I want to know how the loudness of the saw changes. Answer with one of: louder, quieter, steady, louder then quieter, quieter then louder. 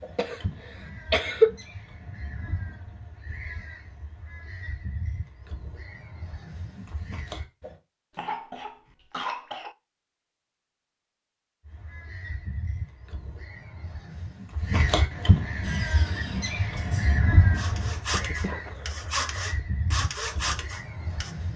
louder.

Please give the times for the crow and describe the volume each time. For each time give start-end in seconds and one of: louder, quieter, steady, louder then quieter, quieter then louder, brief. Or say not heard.
0.0-7.8 steady
11.7-21.5 louder then quieter.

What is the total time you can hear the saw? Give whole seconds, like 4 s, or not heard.
6 s.